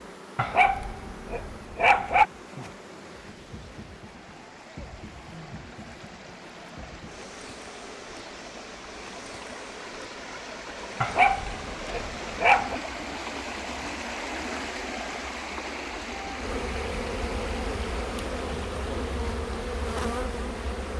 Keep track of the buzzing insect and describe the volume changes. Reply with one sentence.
The loudness of the buzzing insect goes up.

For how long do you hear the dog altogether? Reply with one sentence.
The dog can be heard for 4 seconds in total.